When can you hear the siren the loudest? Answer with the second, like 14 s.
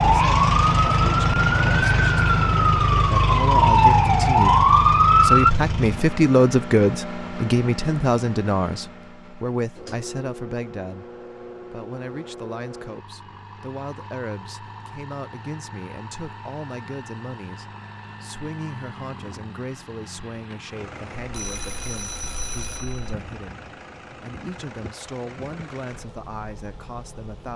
5 s.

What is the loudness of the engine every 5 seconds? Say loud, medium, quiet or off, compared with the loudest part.
loud, medium, quiet, quiet, quiet, quiet.